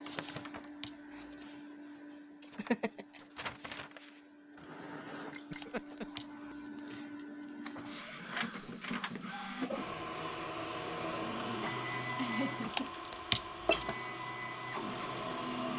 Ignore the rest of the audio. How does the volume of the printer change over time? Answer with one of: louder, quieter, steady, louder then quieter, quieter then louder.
louder.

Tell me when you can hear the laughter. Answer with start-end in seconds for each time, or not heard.
2.5-3.0, 5.5-6.0, 12.2-12.9.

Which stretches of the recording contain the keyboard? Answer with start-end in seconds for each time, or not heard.
not heard.